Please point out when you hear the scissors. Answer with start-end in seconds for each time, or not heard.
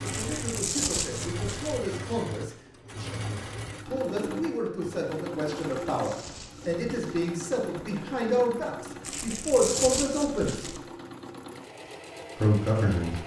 not heard.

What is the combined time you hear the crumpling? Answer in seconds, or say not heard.
5 s.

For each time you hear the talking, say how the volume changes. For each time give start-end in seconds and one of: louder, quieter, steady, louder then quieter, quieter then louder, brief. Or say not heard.
0.0-10.7 louder
12.3-13.2 brief.